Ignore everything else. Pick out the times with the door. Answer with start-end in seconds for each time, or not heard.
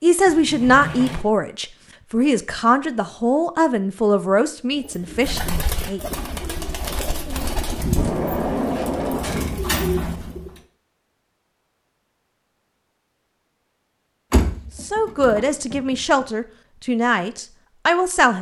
0.2-1.2, 8.0-9.7, 14.3-15.9.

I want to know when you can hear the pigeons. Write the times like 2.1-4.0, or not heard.
4.8-10.6.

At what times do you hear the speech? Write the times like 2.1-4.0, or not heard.
0.0-6.0, 14.8-18.3.